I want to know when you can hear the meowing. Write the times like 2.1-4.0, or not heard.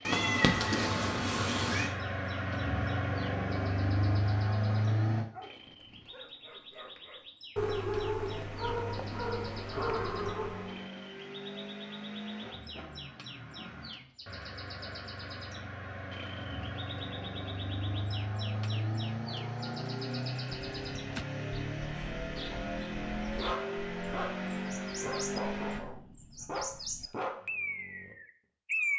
0.1-1.9.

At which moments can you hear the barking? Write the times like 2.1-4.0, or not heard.
5.3-10.8, 23.4-28.1.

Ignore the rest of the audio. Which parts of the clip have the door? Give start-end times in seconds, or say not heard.
20.5-21.2.